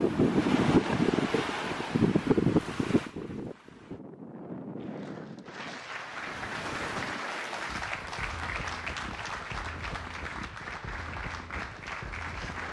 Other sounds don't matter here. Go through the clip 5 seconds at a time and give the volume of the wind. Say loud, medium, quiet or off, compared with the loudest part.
loud, quiet, quiet.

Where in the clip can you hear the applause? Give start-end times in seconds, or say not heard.
4.8-12.6.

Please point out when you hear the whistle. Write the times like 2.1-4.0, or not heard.
not heard.